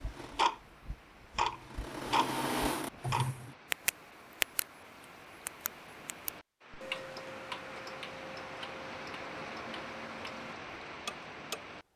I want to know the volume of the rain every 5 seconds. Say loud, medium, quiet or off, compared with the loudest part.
medium, loud, loud.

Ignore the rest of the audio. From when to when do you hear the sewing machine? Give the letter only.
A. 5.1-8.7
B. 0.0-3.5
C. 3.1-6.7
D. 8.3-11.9
B.